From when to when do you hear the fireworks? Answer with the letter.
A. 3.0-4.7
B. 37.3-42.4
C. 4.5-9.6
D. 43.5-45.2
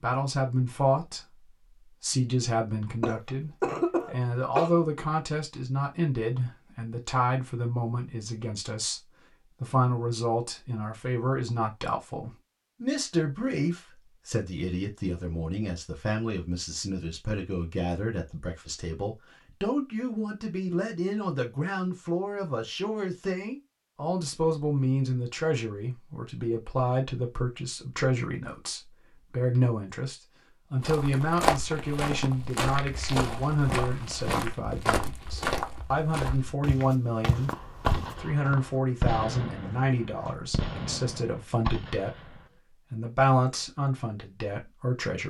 B.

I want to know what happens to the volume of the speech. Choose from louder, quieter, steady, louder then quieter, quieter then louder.
steady.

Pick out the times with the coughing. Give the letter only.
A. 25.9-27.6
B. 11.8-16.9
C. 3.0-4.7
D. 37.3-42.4
C.